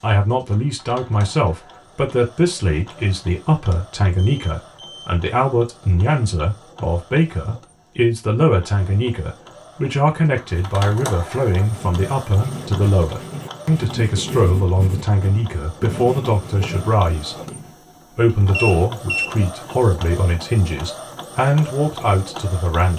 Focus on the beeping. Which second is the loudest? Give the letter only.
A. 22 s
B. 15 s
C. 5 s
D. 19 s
D.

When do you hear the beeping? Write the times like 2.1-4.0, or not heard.
3.7-5.1, 18.5-19.4.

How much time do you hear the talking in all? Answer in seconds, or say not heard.
22 s.